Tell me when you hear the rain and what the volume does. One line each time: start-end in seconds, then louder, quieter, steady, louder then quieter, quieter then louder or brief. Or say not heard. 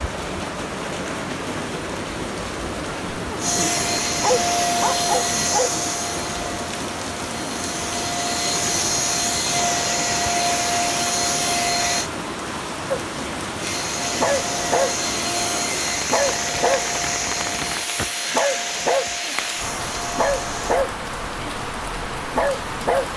0.0-23.1 steady.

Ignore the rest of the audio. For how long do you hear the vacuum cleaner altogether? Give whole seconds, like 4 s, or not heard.
16 s.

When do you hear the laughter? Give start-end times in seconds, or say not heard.
2.9-3.9.